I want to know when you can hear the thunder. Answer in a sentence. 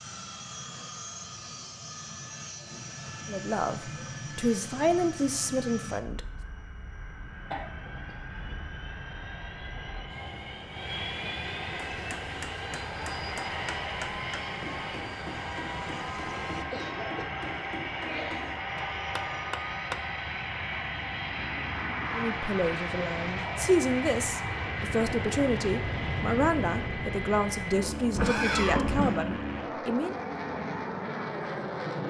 You can't hear the thunder here.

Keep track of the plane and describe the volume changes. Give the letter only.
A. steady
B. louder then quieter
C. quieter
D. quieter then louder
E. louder
E.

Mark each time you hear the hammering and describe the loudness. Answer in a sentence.
You can hear the hammering from 11.9 to 20.0 s, at a steady volume.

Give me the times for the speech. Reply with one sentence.
The speech can be heard from 3.2 to 6.2 s and from 22.1 to 30.1 s.